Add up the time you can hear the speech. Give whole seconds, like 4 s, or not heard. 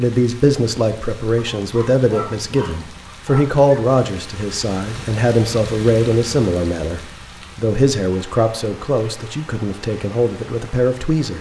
11 s.